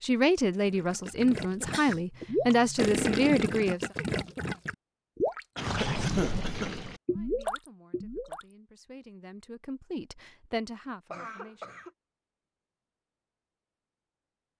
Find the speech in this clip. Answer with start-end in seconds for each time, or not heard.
0.0-3.9, 7.0-11.8.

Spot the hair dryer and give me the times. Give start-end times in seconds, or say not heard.
not heard.